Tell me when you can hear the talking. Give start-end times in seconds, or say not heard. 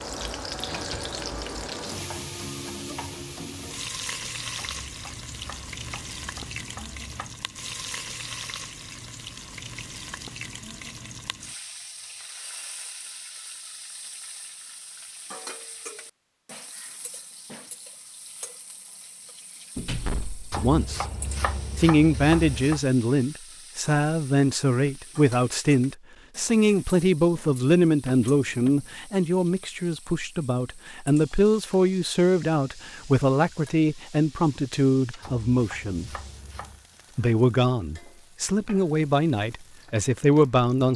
20.6-21.1, 21.8-36.1, 37.1-40.9.